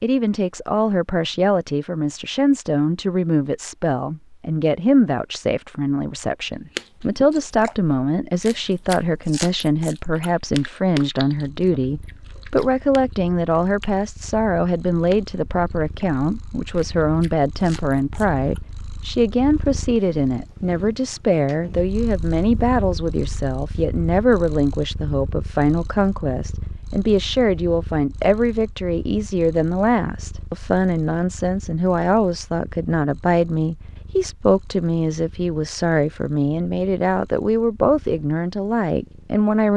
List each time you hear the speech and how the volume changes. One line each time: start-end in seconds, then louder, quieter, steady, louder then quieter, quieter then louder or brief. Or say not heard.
0.0-39.7 steady.